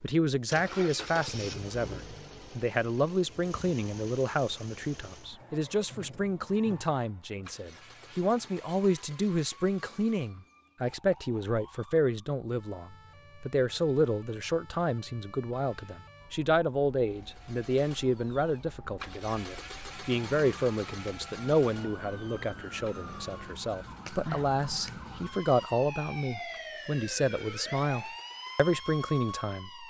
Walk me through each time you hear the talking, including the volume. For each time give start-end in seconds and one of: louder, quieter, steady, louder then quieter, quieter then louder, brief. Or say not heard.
0.0-29.8 steady.